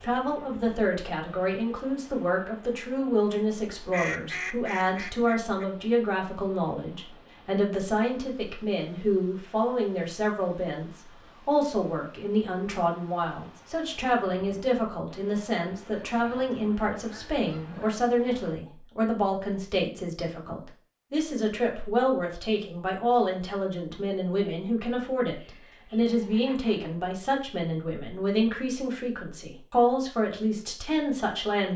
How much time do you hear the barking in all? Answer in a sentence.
You can't hear the barking here.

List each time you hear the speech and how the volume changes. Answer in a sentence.
The speech can be heard from 0.0 to 31.7 s, at a steady volume.